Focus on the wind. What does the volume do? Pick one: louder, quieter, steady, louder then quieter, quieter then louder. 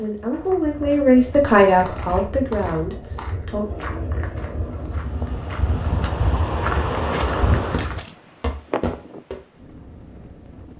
louder then quieter.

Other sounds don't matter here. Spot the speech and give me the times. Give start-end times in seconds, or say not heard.
0.0-3.6.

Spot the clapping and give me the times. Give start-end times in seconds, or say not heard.
not heard.